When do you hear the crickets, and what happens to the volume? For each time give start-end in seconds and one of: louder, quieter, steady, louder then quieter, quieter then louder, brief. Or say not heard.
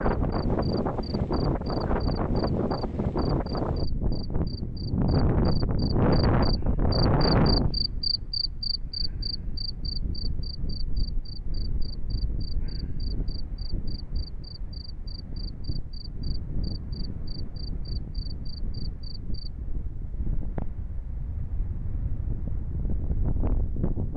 0.0-19.5 louder then quieter.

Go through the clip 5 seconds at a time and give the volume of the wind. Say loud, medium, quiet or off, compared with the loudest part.
loud, loud, quiet, quiet, medium.